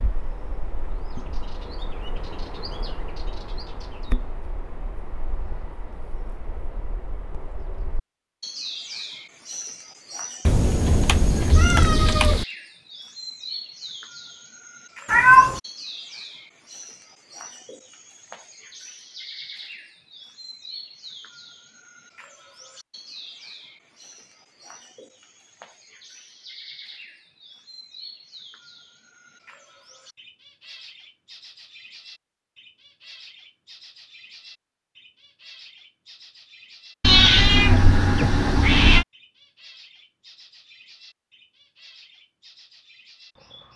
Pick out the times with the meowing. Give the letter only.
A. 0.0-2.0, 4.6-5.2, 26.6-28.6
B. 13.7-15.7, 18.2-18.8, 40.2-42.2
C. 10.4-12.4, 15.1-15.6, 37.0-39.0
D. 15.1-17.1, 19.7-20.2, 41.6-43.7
C.